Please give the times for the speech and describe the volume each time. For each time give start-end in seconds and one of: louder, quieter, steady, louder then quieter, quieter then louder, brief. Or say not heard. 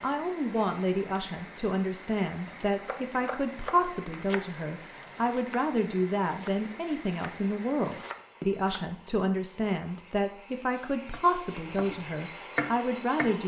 0.0-13.4 steady.